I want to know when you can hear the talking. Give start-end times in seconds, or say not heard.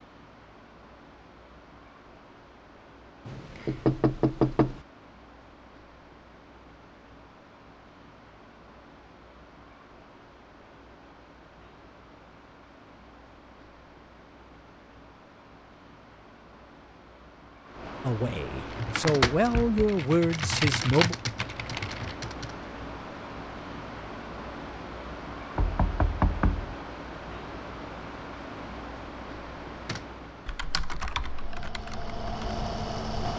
18.0-21.1.